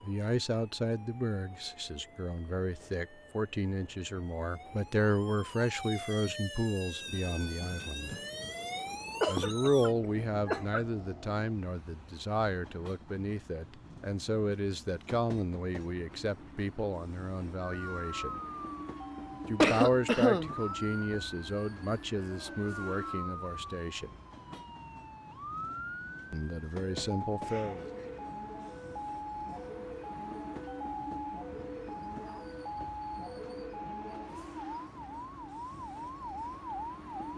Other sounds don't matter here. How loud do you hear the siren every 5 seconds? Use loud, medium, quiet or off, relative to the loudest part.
quiet, loud, off, loud, loud, loud, loud, loud.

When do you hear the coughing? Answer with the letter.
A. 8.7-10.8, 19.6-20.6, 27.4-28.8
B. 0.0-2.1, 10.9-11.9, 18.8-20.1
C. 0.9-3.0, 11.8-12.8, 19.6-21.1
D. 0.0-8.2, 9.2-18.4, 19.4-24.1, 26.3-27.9
A.